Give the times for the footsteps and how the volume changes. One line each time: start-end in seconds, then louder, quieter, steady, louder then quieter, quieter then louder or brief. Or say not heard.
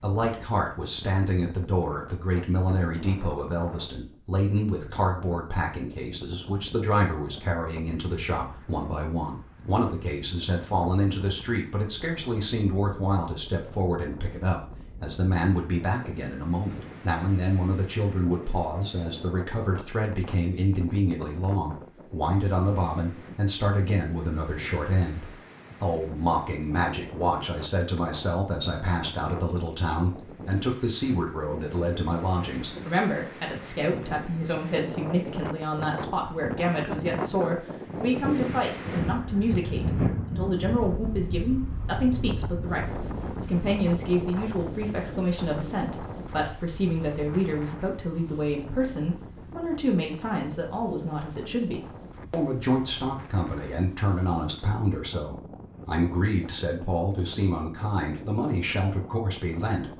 not heard.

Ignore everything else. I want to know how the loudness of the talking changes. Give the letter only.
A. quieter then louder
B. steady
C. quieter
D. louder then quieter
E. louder
B.